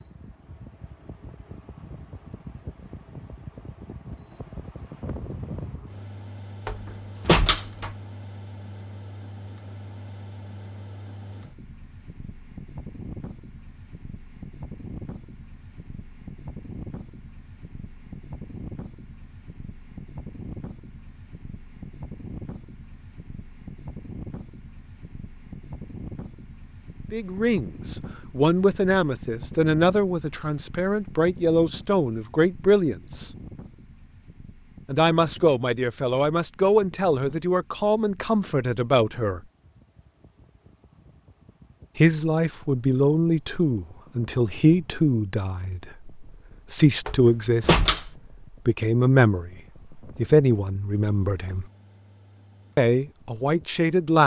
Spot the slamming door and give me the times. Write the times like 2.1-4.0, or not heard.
6.7-7.9, 47.0-48.0.